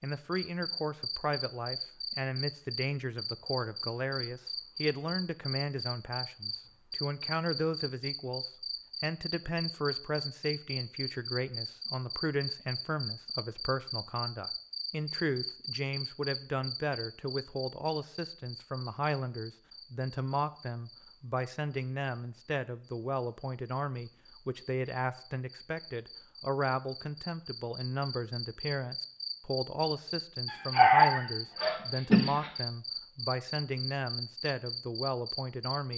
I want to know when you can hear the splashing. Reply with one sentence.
You can't hear the splashing here.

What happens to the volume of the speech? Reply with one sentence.
The volume of the speech stays about the same.